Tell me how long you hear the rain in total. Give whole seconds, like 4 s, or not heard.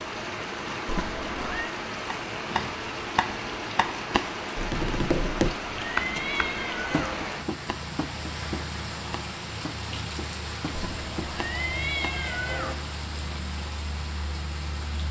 15 s.